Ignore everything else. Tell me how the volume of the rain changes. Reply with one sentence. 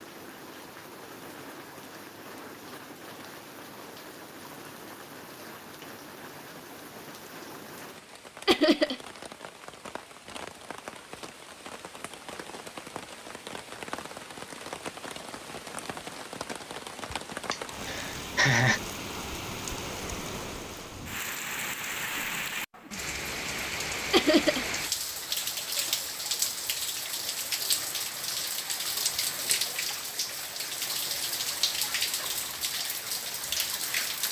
The volume of the rain goes up.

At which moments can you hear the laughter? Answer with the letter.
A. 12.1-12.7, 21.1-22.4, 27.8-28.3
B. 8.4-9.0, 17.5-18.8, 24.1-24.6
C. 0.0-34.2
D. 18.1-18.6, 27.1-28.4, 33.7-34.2
B.